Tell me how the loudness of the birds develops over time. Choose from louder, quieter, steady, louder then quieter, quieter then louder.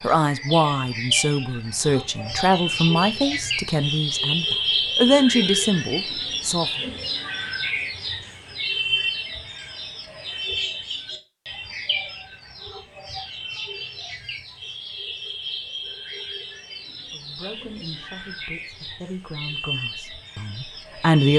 quieter.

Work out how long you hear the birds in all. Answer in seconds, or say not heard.
21 s.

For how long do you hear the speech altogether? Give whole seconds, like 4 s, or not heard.
11 s.